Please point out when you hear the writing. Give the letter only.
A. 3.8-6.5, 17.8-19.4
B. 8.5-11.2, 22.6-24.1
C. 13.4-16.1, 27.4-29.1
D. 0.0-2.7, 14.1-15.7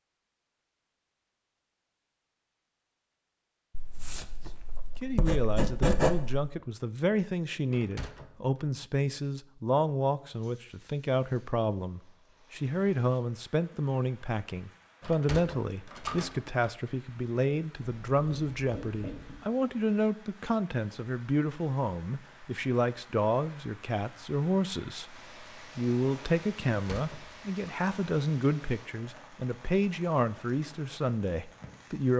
A.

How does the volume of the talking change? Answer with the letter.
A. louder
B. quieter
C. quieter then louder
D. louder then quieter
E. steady
E.